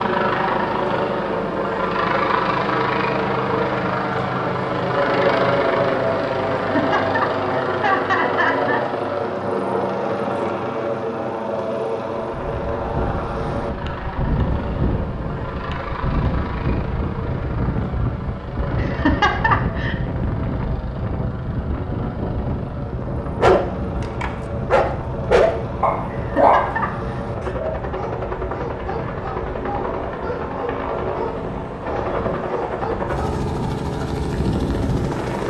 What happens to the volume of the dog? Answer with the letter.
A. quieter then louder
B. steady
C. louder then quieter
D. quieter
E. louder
D.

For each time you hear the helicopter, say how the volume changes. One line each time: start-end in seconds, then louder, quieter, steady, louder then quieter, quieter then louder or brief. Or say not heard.
0.0-35.4 quieter then louder.